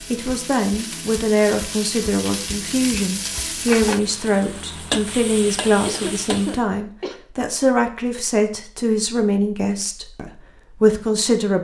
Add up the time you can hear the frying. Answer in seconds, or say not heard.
7 s.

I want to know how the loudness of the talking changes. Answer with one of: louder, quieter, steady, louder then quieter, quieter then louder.
steady.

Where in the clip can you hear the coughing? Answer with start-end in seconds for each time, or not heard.
5.8-7.2.